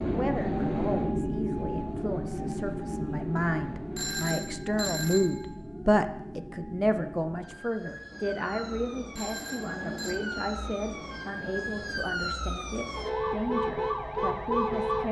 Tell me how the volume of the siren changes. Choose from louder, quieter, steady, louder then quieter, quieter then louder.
quieter then louder.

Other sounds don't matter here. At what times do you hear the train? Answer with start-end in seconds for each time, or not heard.
0.0-4.2, 8.1-12.1.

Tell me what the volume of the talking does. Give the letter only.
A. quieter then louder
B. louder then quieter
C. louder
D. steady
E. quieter
B.